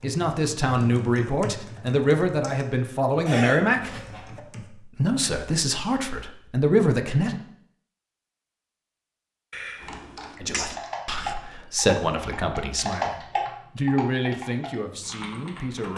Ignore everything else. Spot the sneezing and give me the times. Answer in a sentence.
You can hear the sneezing from 3.2 to 4.4 s and from 9.5 to 10.8 s.